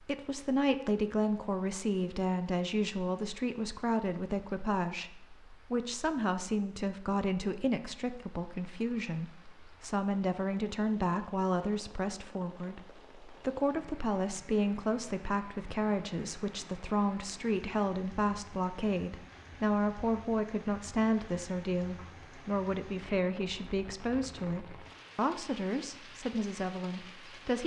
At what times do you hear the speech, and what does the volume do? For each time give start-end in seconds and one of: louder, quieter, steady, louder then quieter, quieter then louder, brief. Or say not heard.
0.0-27.6 steady.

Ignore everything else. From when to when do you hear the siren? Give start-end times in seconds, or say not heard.
not heard.